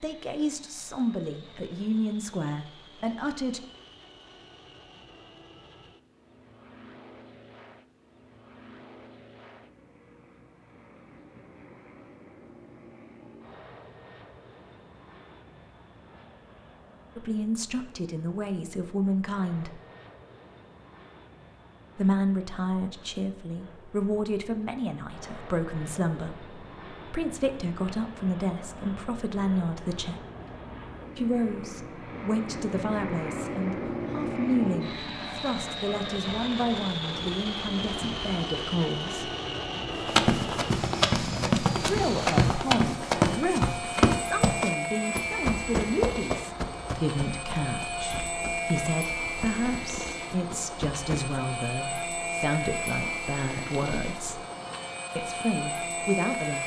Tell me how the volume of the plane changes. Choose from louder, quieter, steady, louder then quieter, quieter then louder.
louder.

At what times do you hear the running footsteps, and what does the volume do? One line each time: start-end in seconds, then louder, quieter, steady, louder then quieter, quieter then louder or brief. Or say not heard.
40.0-51.4 quieter.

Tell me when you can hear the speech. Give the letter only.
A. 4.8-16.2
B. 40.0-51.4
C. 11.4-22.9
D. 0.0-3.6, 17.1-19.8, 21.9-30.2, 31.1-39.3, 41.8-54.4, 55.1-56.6
D.